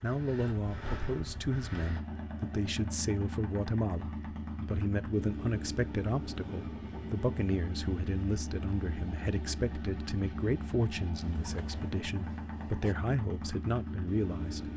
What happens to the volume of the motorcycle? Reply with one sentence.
The volume of the motorcycle stays about the same.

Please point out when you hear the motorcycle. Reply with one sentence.
The motorcycle can be heard from 0.0 to 14.7 s.